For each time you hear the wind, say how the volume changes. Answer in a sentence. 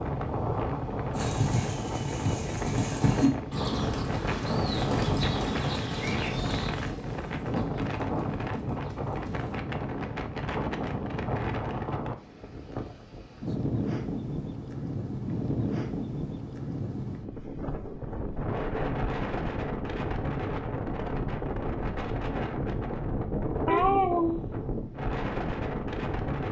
The wind can be heard from 0.0 to 26.4 s, at a steady volume.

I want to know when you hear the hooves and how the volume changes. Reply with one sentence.
The hooves can be heard from 1.1 to 9.6 s, getting quieter.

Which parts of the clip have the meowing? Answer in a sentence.
You can hear the meowing from 23.6 to 24.4 s.